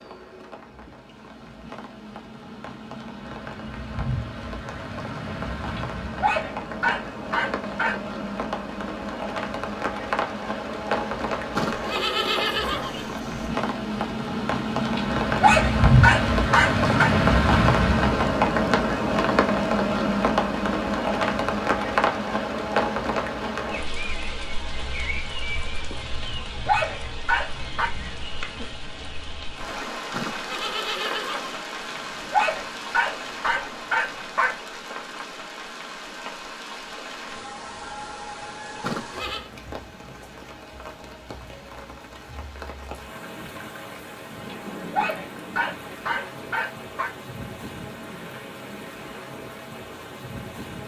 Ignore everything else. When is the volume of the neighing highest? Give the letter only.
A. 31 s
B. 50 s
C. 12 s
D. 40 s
C.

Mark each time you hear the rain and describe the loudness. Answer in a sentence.
The rain can be heard from 0.0 to 50.8 s, getting louder then quieter.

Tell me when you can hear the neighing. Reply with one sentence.
The neighing can be heard from 11.6 to 13.5 s, from 30.1 to 31.6 s and from 38.8 to 39.5 s.